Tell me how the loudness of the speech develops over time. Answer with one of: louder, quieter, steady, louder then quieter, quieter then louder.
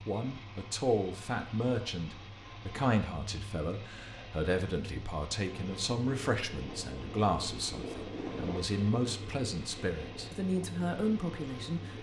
steady.